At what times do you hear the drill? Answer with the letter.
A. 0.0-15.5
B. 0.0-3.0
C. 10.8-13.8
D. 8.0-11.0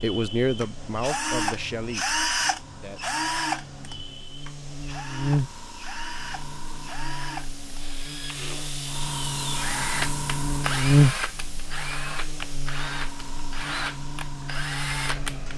A.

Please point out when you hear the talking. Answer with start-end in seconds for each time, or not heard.
0.0-3.0.